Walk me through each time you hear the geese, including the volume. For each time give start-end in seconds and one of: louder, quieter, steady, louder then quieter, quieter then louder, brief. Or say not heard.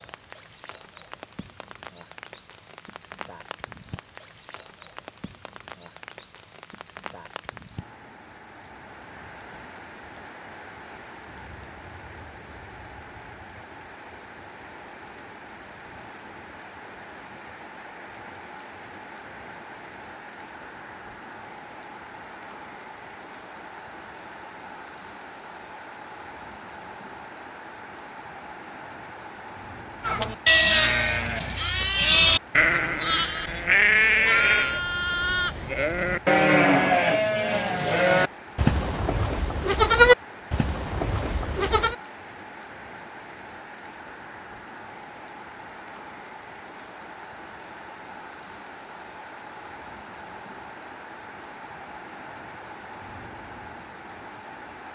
not heard.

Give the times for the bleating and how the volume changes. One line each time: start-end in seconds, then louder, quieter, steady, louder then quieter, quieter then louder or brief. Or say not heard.
30.0-42.0 steady.